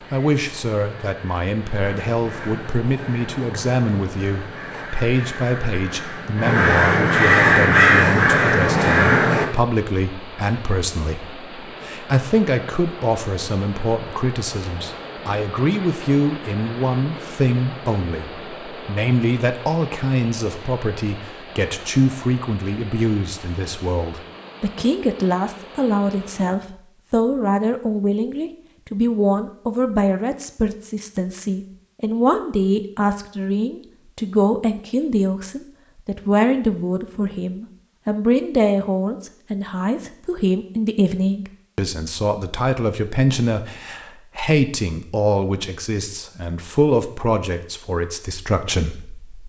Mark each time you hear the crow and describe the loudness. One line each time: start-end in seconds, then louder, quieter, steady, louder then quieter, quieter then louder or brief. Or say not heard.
0.0-9.4 louder.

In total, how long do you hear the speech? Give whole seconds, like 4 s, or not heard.
49 s.